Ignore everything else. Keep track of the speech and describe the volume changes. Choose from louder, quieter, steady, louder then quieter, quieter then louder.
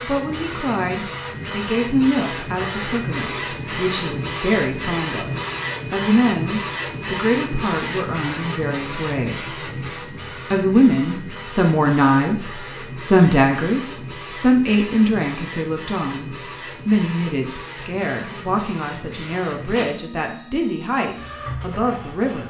louder then quieter.